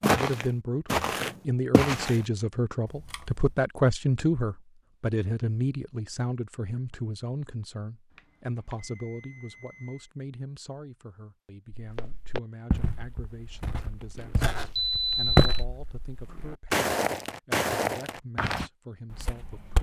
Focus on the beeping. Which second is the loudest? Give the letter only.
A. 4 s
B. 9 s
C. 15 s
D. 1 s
C.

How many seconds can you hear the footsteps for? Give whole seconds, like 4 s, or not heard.
10 s.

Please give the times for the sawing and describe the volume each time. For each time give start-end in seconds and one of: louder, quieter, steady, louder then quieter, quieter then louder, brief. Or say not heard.
not heard.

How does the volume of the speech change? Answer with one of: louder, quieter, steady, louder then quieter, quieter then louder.
quieter.